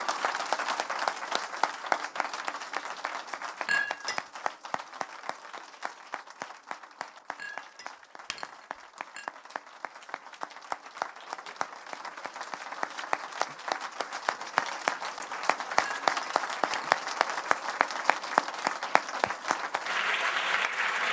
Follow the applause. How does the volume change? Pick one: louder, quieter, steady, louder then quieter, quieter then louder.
quieter then louder.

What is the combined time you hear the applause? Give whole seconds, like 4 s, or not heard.
21 s.